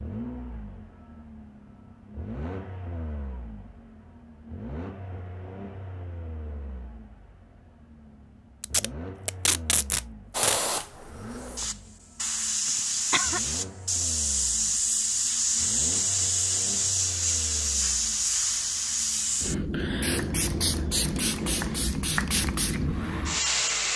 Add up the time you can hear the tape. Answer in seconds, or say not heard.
2 s.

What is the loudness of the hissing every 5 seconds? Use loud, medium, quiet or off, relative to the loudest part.
off, off, loud, loud, loud.